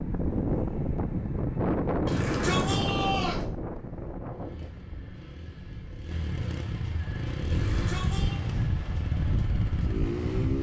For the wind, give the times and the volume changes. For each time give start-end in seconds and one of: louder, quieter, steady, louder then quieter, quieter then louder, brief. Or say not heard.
0.0-10.5 quieter then louder.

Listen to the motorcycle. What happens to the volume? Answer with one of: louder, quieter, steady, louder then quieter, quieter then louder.
louder.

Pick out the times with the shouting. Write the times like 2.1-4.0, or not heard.
2.0-3.5, 7.5-8.4.